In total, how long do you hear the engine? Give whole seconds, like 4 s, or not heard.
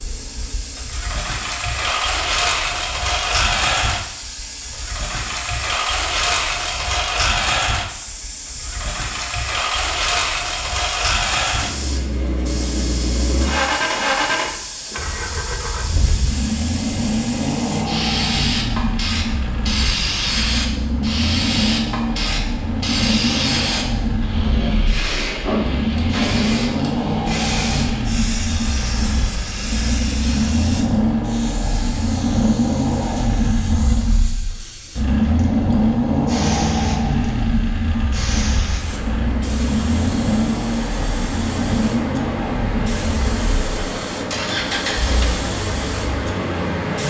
47 s.